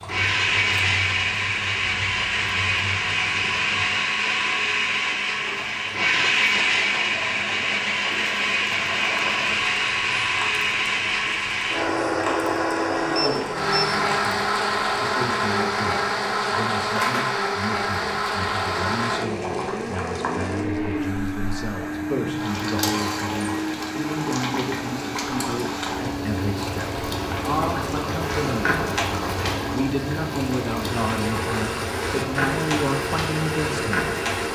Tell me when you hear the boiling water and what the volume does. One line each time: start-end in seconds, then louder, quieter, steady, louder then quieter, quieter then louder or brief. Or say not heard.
0.0-34.4 louder.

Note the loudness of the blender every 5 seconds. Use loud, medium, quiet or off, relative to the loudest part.
loud, loud, loud, loud, medium, medium, medium.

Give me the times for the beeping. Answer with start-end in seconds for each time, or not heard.
13.2-13.9.